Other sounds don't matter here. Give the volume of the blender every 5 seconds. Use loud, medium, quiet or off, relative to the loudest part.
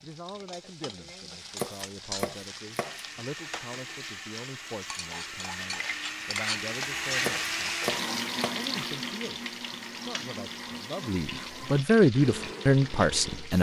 medium, loud, medium.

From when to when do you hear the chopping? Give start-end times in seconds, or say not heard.
1.4-3.2, 7.0-8.7.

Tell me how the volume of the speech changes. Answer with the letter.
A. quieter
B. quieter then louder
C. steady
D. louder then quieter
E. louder
E.